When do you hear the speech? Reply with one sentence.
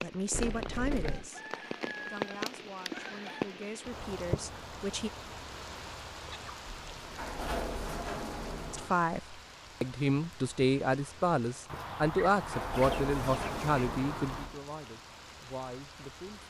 The speech can be heard from 0.0 to 5.1 s and from 8.7 to 16.4 s.